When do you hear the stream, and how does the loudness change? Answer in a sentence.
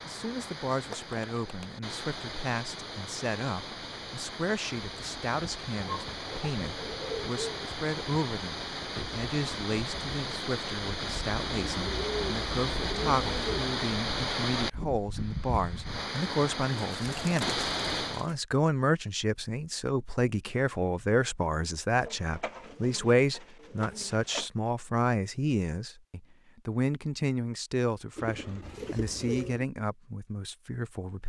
The stream can be heard from 0.0 to 18.2 s, getting louder.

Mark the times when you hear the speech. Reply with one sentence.
The speech can be heard from 0.1 to 31.2 s.